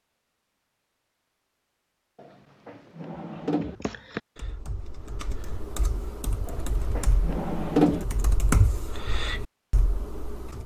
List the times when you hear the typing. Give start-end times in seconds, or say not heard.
3.1-10.6.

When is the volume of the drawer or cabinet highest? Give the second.
8 s.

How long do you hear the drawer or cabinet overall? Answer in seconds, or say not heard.
3 s.